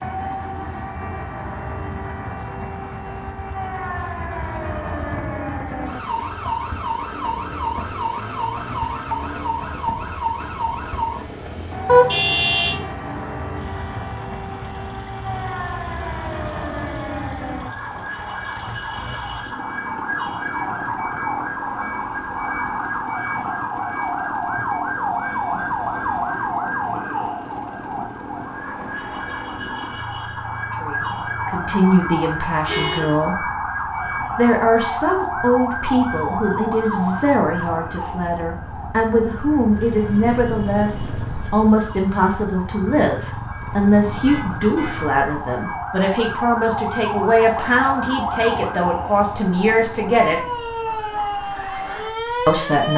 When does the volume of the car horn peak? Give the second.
12 s.